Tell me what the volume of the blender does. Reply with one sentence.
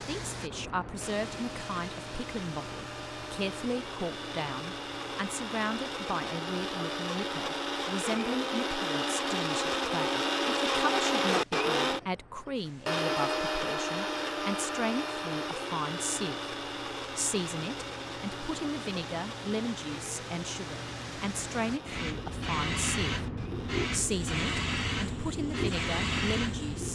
The volume of the blender goes up, then down.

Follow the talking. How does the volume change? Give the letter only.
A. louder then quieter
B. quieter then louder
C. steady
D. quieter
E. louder
C.